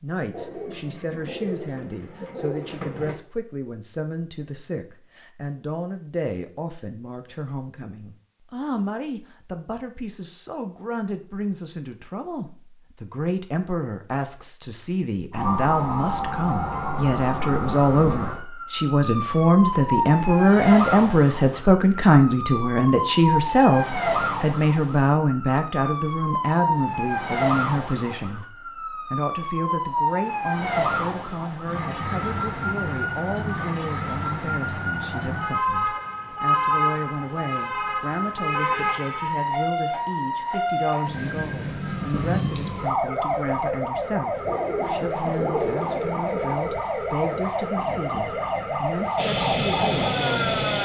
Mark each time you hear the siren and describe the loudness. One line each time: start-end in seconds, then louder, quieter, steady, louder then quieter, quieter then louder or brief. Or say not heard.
15.3-50.8 steady.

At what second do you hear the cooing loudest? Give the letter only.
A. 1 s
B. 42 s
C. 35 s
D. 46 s
D.